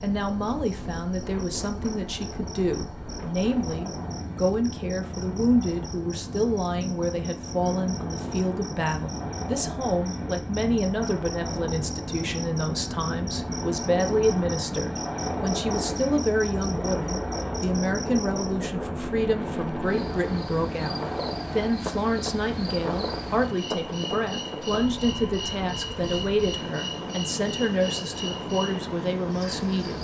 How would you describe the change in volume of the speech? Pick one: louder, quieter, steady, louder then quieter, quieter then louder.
steady.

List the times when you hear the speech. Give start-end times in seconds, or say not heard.
0.0-29.9.